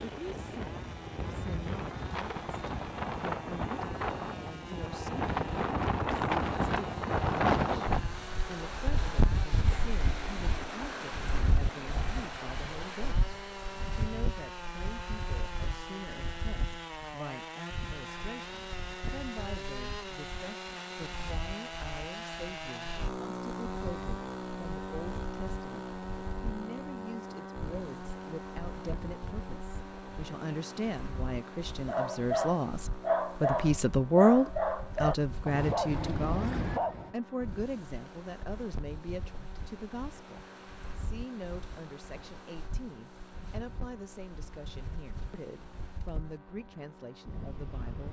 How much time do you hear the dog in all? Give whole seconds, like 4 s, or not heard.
5 s.